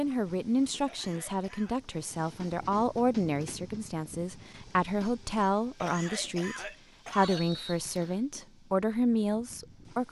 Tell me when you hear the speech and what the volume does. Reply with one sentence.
You can hear the speech from 0.0 to 10.0 s, at a steady volume.